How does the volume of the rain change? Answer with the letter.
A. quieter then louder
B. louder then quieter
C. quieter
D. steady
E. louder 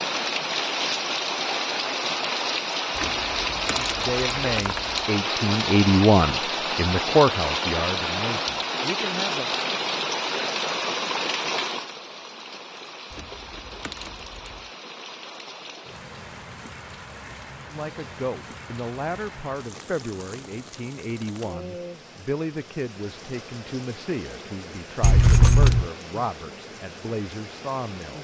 C.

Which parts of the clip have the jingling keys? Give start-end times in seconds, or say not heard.
3.0-5.0, 13.1-14.6, 25.0-25.9.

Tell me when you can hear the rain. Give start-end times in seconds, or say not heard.
0.0-28.1.